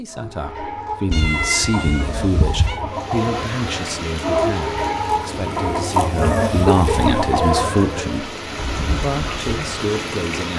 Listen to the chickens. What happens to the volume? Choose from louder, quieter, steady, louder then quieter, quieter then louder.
louder.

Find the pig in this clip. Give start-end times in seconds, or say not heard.
not heard.